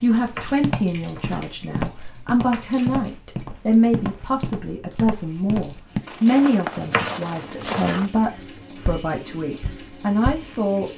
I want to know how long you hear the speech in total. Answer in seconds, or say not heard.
11 s.